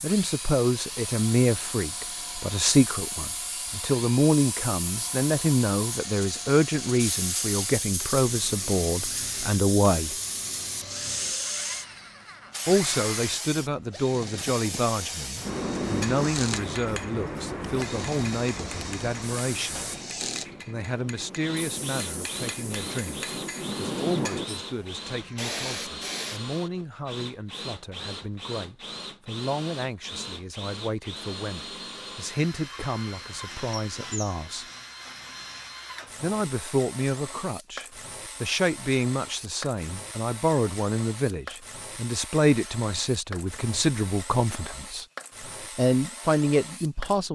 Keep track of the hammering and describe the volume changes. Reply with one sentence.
The loudness of the hammering goes down, then up.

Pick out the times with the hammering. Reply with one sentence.
You can hear the hammering from 15.4 to 24.4 s.